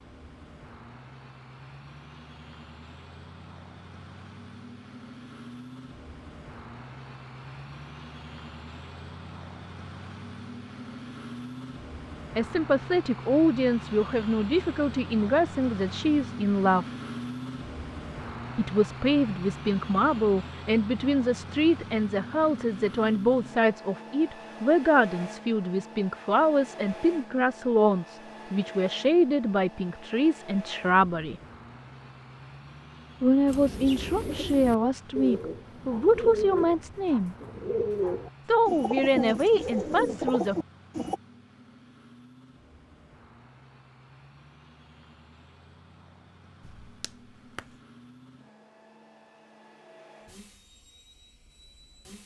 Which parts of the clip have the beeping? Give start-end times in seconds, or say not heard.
46.6-47.8.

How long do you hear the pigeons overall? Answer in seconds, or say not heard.
8 s.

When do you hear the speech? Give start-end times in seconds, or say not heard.
12.3-16.9, 18.6-31.4, 33.2-37.4, 38.5-40.5.